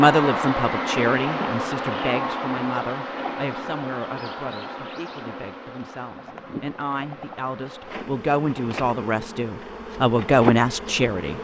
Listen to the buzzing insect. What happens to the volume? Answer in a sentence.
The volume of the buzzing insect goes down, then up.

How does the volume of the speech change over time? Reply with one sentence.
The volume of the speech goes down, then up.